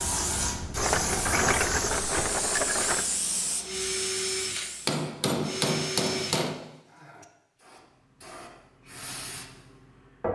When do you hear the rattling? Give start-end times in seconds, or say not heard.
0.8-3.0.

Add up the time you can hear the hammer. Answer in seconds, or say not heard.
2 s.